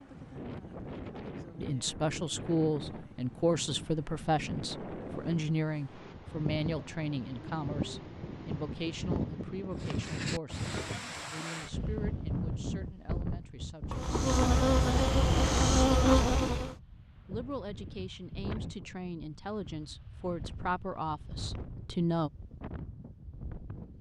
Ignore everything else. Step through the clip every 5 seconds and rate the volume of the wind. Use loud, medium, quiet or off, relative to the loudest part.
medium, loud, loud, medium, medium.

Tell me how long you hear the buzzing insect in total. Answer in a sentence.
You can hear the buzzing insect for 3 seconds altogether.